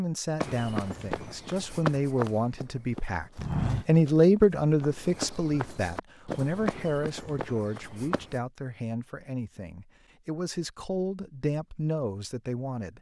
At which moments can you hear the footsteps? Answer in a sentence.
The footsteps can be heard from 0.4 to 8.4 s.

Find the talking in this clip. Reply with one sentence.
The talking can be heard from 0.0 to 12.9 s.